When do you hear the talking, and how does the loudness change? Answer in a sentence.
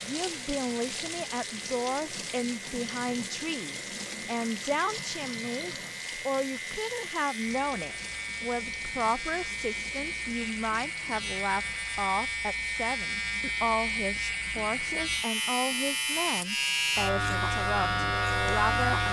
The talking can be heard from 0.0 to 19.0 s, at a steady volume.